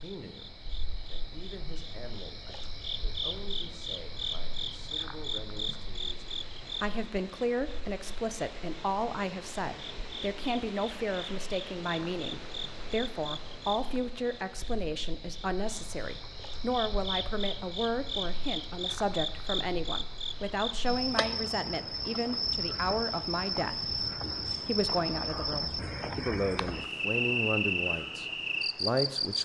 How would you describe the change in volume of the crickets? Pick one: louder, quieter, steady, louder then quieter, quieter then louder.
quieter then louder.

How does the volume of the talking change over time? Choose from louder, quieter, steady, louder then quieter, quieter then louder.
louder.